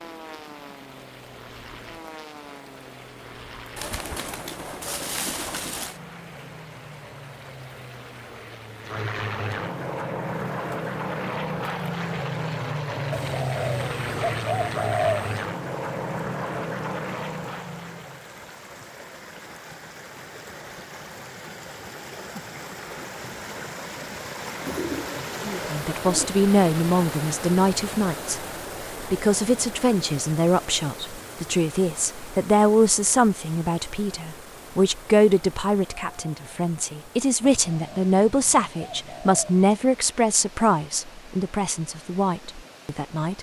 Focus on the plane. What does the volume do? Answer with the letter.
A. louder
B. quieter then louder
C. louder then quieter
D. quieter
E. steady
A.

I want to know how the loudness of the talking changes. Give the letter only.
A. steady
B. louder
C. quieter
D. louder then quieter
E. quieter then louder
A.